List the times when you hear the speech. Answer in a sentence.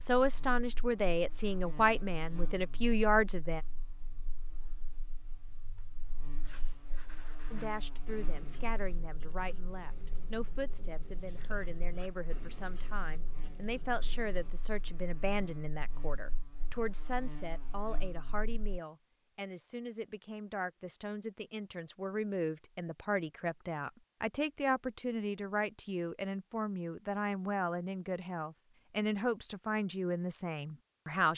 You can hear the speech from 0.0 to 3.6 s and from 7.5 to 31.3 s.